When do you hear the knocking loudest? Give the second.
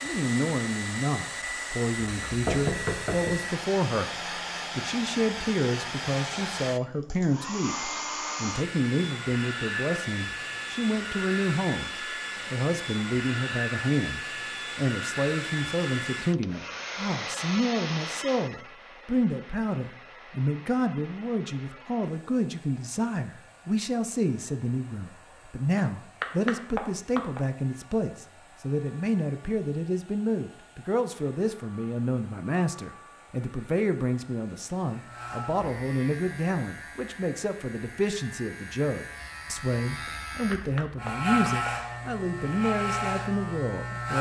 3 s.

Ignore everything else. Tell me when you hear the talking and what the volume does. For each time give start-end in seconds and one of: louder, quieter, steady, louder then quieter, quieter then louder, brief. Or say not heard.
0.0-44.1 steady.